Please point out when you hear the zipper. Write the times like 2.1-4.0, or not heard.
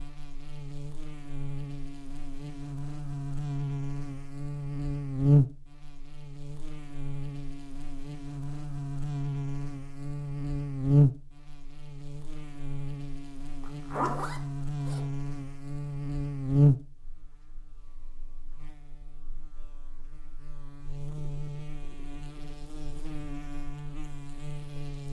13.6-15.0.